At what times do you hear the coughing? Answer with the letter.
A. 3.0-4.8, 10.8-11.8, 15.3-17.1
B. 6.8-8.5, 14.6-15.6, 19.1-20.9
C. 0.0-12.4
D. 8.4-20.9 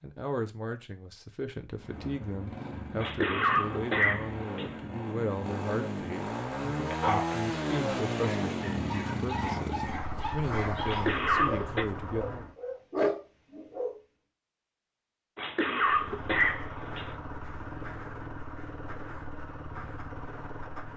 A.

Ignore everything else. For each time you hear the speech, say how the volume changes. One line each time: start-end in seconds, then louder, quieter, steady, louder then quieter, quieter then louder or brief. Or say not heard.
0.0-12.4 steady.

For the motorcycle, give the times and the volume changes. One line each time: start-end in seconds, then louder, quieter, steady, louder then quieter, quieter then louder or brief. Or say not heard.
1.8-12.6 louder then quieter
15.8-20.9 steady.